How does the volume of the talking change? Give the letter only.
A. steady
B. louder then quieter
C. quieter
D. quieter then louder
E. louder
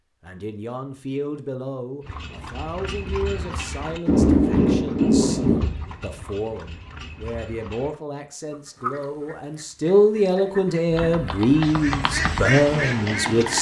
E.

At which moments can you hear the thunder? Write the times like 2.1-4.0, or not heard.
4.0-5.6.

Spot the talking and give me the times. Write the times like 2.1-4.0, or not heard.
0.2-13.5.